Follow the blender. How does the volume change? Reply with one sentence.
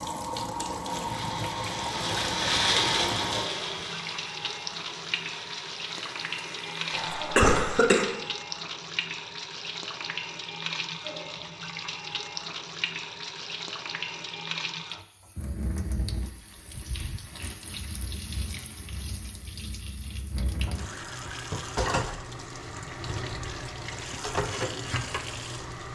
The volume of the blender goes up, then down.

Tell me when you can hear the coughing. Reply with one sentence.
You can hear the coughing from 6.9 to 8.1 s.